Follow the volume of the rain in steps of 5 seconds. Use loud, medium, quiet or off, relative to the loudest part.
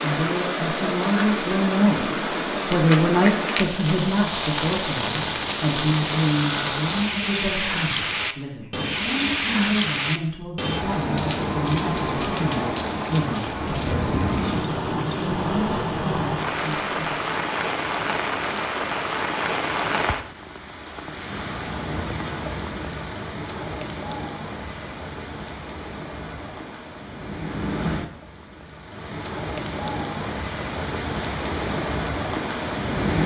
loud, loud, loud, loud, medium, medium, loud.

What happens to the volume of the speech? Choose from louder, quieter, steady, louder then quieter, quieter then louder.
quieter.